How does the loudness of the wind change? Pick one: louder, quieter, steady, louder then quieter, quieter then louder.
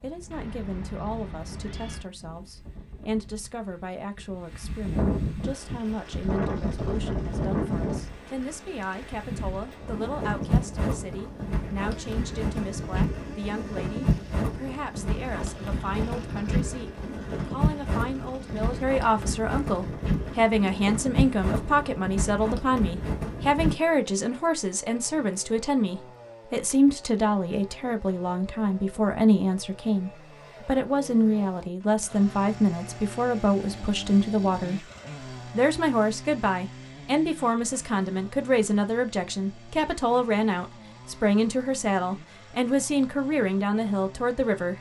louder.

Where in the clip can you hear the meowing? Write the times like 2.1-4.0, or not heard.
0.3-2.1.